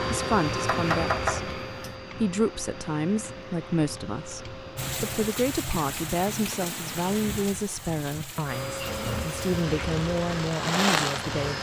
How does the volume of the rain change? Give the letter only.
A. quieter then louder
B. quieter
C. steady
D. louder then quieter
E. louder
A.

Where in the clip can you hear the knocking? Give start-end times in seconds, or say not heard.
0.7-1.9.